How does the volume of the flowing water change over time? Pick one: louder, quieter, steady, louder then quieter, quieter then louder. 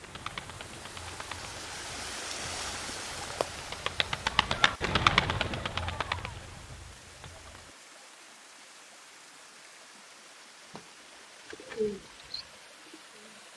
quieter.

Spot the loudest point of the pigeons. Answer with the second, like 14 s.
5 s.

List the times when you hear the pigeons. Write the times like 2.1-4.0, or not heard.
0.0-7.7, 10.7-13.5.